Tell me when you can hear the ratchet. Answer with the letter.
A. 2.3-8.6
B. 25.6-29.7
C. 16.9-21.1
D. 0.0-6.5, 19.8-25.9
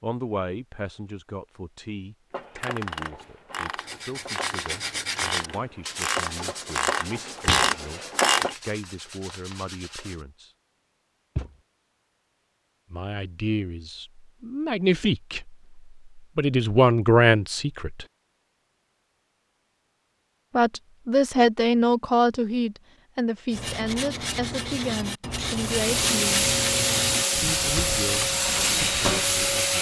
A.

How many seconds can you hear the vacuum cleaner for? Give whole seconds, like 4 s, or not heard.
4 s.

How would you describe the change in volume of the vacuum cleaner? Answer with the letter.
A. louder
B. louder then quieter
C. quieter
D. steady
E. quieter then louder
D.